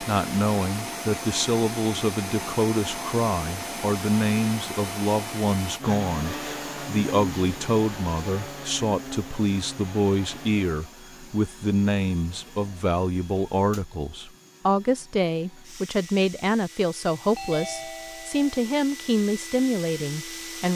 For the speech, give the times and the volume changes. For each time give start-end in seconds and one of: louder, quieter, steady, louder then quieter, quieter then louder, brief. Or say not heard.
0.0-20.7 steady.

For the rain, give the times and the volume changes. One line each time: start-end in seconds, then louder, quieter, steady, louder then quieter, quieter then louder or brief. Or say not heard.
not heard.